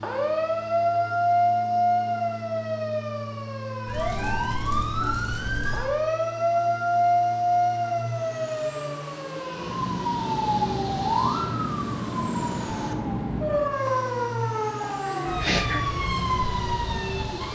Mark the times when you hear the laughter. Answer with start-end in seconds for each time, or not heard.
15.1-15.8.